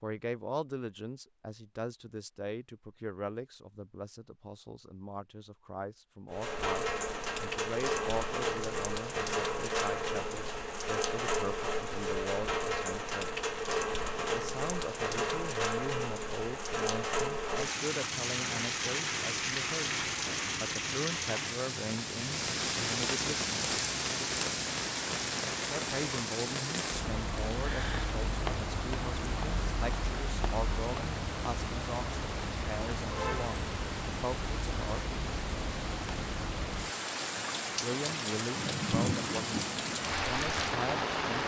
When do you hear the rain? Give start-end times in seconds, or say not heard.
6.3-41.4.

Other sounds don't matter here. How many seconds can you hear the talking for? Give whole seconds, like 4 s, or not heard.
36 s.